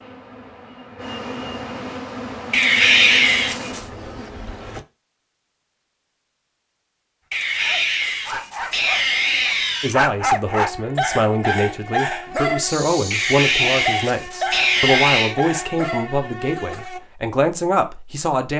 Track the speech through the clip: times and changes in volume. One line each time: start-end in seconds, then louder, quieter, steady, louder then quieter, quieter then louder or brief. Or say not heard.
9.8-18.5 steady.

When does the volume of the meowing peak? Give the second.
3 s.